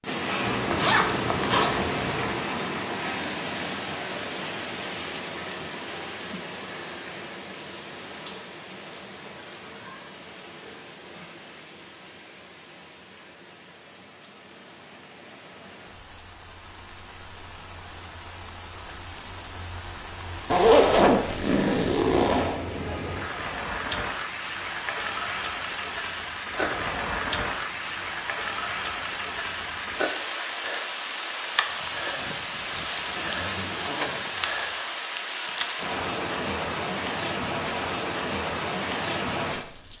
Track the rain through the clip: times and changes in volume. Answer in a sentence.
You can hear the rain from 0.0 to 39.9 s, getting quieter then louder.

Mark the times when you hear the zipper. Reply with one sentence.
The zipper can be heard from 0.4 to 2.4 s, from 20.5 to 22.6 s and from 32.8 to 34.7 s.